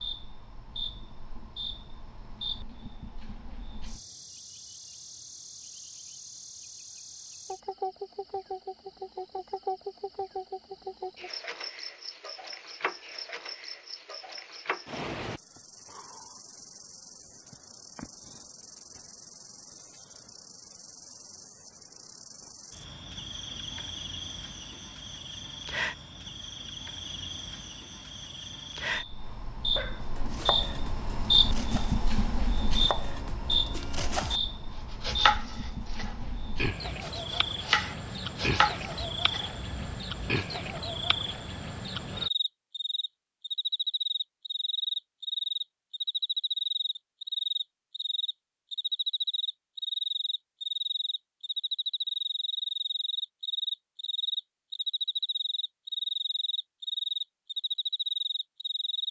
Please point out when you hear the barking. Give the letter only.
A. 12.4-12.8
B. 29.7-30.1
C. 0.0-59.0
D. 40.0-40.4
B.